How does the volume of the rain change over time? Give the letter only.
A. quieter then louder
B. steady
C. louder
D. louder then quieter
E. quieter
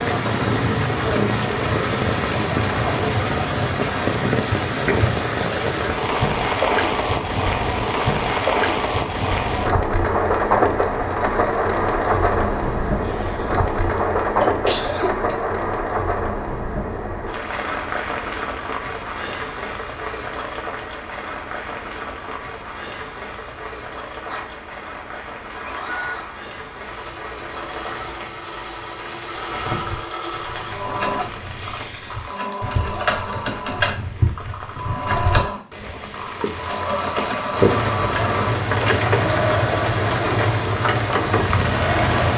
A.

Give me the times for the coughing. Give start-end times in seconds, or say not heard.
13.1-15.3, 31.6-32.6.